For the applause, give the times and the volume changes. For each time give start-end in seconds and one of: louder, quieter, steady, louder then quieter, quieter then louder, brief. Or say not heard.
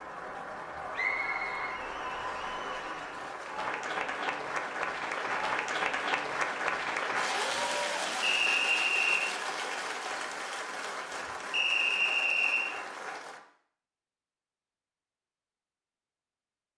0.0-13.4 louder then quieter.